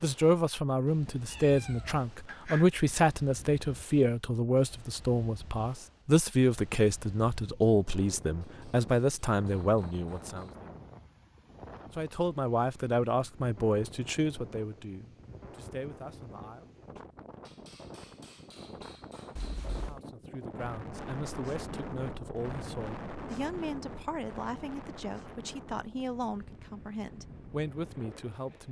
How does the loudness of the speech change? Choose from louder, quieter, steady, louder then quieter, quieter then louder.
quieter.